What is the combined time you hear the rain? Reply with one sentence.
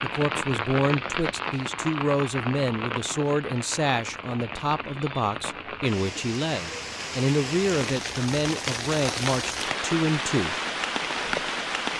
The rain can be heard for 12 seconds in total.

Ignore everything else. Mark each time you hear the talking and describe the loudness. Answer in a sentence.
You can hear the talking from 0.0 to 10.6 s, at a steady volume.